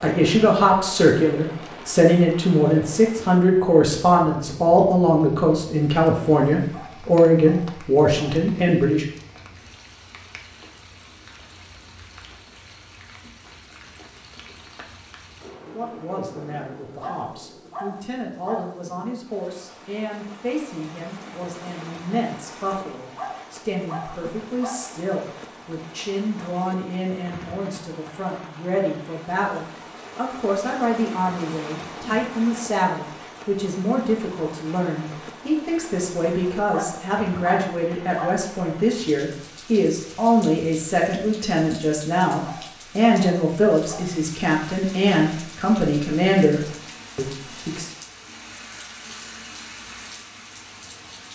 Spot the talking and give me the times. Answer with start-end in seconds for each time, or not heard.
0.0-9.1, 15.7-47.9.